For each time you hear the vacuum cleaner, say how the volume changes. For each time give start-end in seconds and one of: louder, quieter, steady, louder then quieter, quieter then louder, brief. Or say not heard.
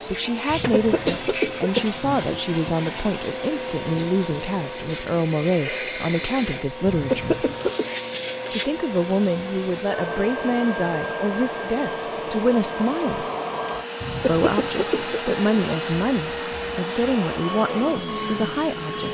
0.0-19.0 steady.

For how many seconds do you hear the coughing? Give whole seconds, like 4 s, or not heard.
4 s.